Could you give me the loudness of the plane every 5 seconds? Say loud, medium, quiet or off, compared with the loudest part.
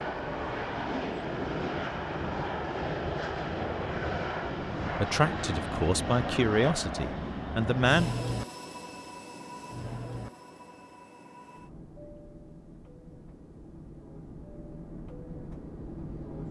loud, loud, quiet, medium.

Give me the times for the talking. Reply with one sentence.
You can hear the talking from 5.0 to 8.1 s.